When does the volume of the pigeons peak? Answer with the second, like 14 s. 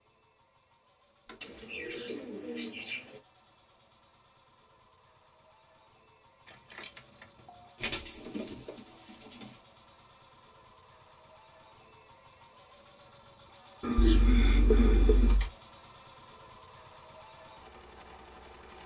15 s.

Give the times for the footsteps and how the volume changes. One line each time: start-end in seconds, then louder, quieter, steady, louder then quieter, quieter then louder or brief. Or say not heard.
not heard.